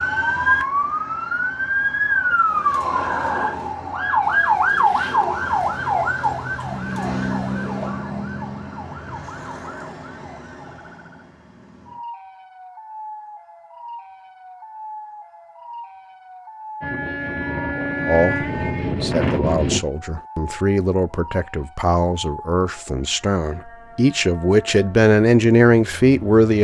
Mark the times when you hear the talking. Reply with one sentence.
The talking can be heard from 18.1 to 26.5 s.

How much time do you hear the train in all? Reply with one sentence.
You can hear the train for 3 seconds altogether.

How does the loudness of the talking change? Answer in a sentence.
The loudness of the talking goes up.